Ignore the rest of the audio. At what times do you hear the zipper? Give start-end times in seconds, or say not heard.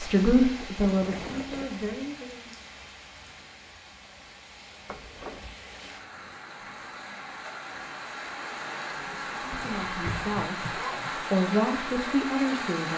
0.8-1.9, 4.8-5.5, 8.9-11.2.